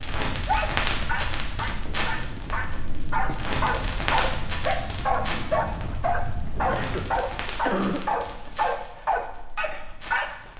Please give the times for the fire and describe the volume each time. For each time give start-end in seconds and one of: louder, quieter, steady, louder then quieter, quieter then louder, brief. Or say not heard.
0.0-10.5 quieter.